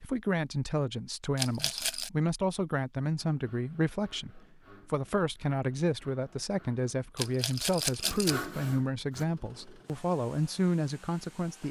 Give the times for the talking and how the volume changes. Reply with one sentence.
The talking can be heard from 0.0 to 11.6 s, at a steady volume.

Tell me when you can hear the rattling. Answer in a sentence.
The rattling can be heard from 1.4 to 2.1 s and from 7.2 to 8.4 s.